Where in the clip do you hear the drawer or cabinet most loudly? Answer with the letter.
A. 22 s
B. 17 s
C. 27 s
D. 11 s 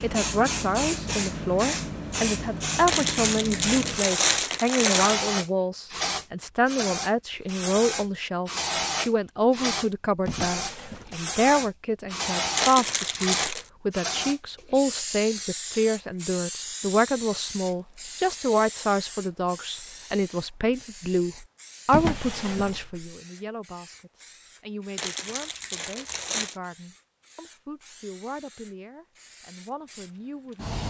A.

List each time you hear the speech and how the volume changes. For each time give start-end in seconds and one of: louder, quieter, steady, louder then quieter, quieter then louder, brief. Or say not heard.
0.0-30.8 quieter.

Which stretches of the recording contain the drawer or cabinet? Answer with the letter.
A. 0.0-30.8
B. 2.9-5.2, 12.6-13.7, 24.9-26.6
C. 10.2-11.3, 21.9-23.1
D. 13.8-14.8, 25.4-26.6
C.